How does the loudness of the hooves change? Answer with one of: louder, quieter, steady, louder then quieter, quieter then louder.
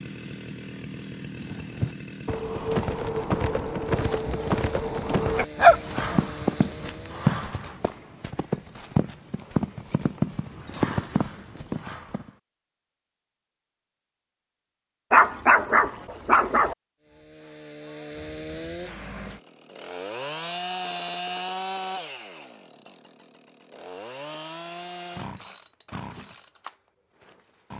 steady.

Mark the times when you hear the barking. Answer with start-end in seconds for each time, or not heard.
5.3-6.2, 15.1-16.8.